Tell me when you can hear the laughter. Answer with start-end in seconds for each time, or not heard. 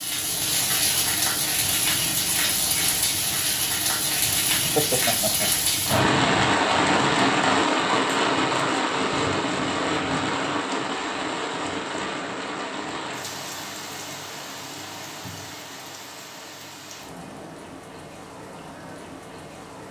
4.7-6.1.